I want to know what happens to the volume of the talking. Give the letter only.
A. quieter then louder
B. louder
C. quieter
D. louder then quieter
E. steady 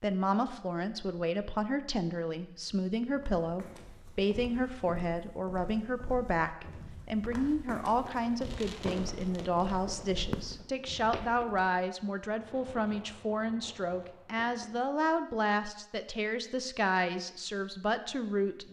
E.